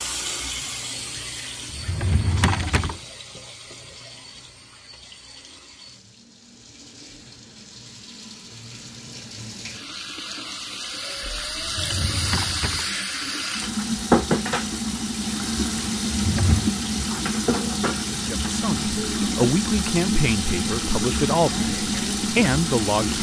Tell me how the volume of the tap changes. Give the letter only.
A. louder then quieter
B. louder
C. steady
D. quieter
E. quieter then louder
E.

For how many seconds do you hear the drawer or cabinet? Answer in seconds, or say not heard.
3 s.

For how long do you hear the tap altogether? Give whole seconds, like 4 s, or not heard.
23 s.